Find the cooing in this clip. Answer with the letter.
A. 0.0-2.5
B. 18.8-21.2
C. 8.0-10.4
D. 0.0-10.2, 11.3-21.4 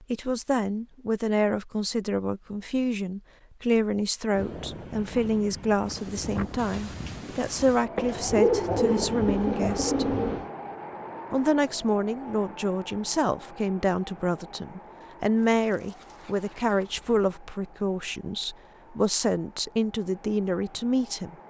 C.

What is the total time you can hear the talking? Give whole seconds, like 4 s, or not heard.
20 s.